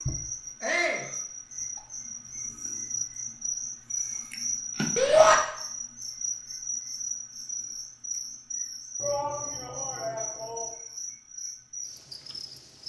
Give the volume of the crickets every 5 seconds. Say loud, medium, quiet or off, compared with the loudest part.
loud, loud, medium.